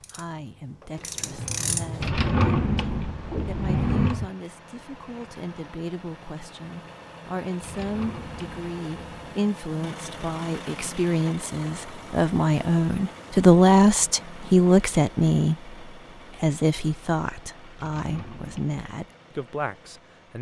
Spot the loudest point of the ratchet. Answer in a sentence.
The loudest moment of the ratchet is at 2 seconds.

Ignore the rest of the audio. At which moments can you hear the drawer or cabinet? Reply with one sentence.
The drawer or cabinet can be heard from 2.0 to 4.3 s, from 7.6 to 9.4 s and from 17.8 to 18.8 s.